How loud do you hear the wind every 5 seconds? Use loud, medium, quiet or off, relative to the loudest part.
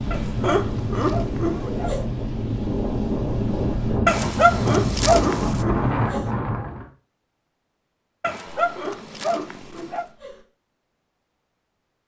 loud, loud, off.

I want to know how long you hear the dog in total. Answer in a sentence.
The dog can be heard for 5 seconds in total.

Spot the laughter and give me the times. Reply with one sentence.
You can hear the laughter from 0.1 to 2.0 s, from 4.5 to 6.3 s and from 8.6 to 10.4 s.